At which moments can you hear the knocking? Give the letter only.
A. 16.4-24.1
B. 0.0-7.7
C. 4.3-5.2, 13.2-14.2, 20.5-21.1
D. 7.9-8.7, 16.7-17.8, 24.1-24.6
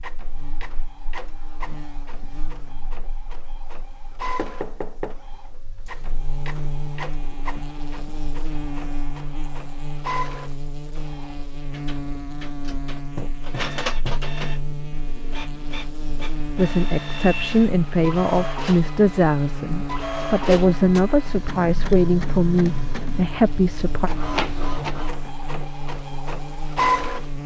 C.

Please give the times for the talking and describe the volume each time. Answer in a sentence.
The talking can be heard from 16.4 to 24.1 s, at a steady volume.